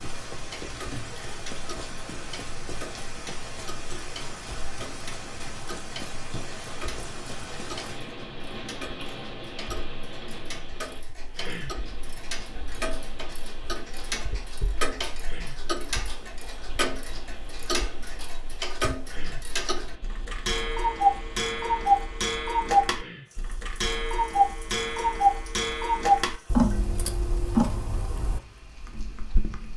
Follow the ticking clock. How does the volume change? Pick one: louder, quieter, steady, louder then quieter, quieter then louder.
louder.